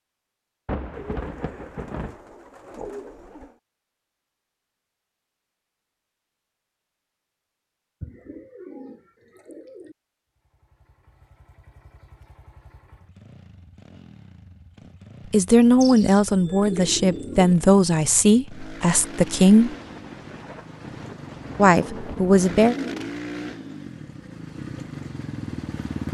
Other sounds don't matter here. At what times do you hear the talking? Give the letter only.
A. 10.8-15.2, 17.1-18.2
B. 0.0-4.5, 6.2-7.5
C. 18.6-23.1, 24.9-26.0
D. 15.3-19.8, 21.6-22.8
D.